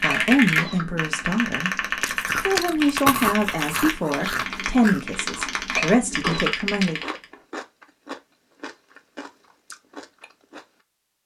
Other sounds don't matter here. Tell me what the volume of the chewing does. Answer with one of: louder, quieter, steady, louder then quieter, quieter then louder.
quieter.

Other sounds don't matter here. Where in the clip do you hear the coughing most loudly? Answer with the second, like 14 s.
6 s.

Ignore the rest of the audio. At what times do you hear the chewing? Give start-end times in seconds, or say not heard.
2.0-10.7.